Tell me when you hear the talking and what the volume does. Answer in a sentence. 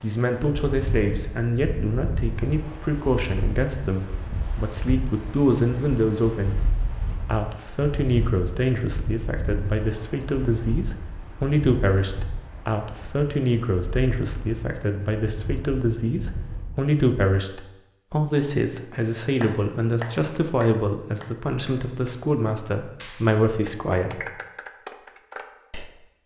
You can hear the talking from 0.0 to 24.2 s, at a steady volume.